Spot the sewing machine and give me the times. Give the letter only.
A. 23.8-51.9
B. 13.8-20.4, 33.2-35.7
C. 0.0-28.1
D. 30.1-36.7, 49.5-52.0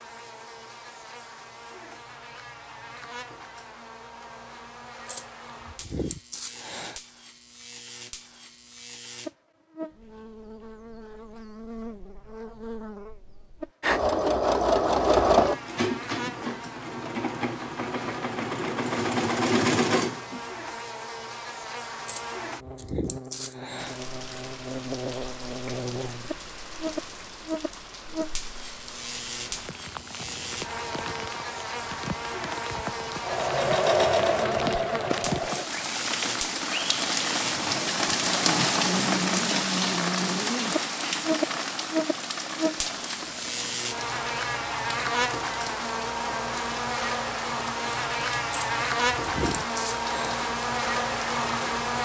B.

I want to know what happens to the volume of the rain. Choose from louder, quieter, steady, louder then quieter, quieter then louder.
louder then quieter.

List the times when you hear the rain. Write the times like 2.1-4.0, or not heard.
23.8-51.9.